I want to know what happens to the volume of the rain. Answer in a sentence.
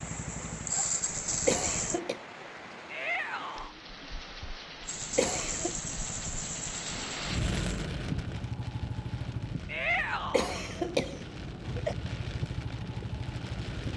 The volume of the rain goes up, then down.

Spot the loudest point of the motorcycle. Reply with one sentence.
The volume of the motorcycle peaks at 1 second.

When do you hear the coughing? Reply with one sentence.
The coughing can be heard from 1.4 to 2.2 s, from 5.2 to 5.8 s and from 10.3 to 11.9 s.